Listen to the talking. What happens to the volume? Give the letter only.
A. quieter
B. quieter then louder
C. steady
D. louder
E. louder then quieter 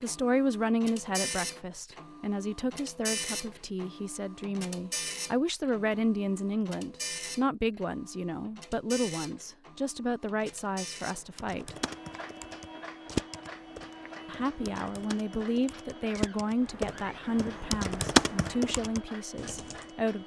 C.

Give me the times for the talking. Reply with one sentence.
You can hear the talking from 0.0 to 11.8 s and from 14.2 to 20.2 s.